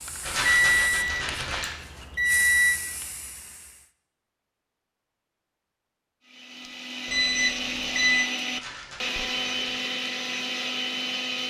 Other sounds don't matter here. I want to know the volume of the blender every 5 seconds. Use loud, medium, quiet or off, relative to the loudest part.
off, loud, loud.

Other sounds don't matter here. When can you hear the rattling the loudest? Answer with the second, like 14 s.
1 s.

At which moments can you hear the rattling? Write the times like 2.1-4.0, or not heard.
0.2-1.8, 8.5-9.8.